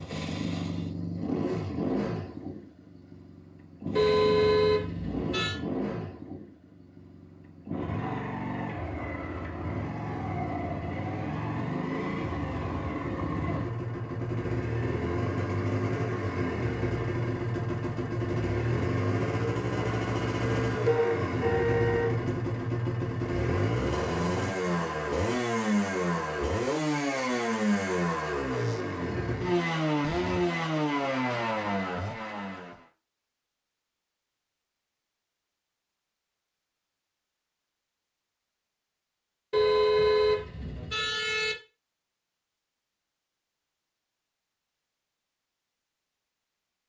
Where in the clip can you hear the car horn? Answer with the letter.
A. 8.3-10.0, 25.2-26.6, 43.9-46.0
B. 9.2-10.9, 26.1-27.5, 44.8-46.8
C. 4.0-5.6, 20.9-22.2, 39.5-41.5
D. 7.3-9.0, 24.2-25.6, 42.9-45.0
C.